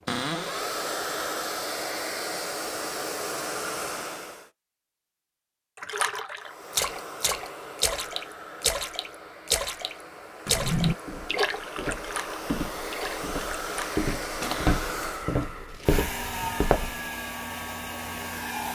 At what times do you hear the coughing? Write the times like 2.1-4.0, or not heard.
not heard.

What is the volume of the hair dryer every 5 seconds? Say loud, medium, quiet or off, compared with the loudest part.
loud, medium, loud, loud.